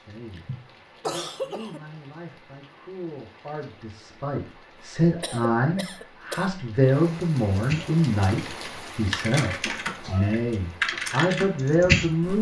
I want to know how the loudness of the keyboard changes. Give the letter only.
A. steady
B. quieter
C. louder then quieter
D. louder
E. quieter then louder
C.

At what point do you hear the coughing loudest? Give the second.
1 s.